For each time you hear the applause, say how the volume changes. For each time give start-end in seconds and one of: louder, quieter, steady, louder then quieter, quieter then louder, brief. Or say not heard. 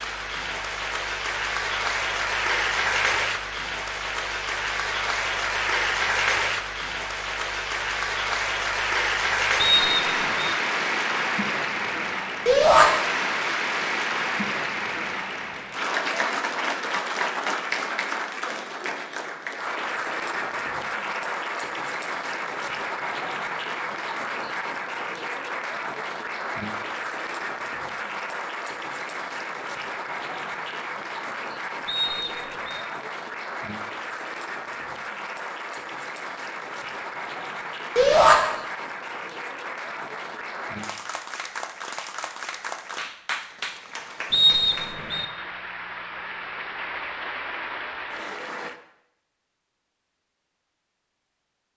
0.0-48.8 quieter.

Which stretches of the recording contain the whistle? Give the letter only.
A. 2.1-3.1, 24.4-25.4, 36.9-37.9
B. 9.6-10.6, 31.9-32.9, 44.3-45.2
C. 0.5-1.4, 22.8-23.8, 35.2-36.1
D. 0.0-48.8
B.